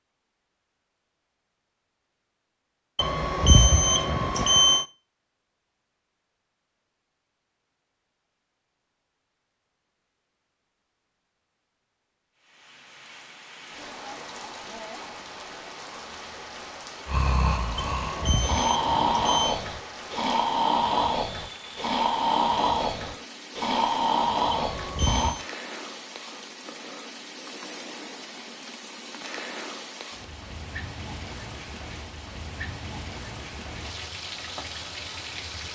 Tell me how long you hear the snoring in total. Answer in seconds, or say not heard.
8 s.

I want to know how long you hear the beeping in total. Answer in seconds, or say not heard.
5 s.